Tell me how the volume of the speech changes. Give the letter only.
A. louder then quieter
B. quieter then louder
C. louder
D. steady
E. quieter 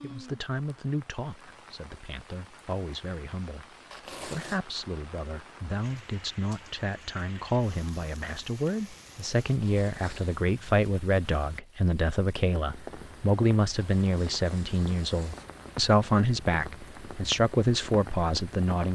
C.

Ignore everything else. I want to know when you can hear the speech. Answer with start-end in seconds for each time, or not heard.
0.0-18.9.